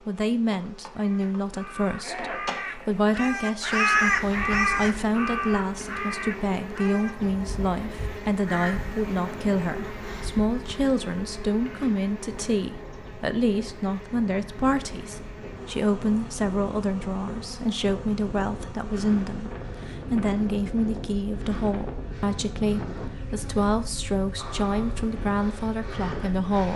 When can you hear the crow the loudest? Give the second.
4 s.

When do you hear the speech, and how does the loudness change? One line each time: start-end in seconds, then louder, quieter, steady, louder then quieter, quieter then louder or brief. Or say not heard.
0.1-26.7 steady.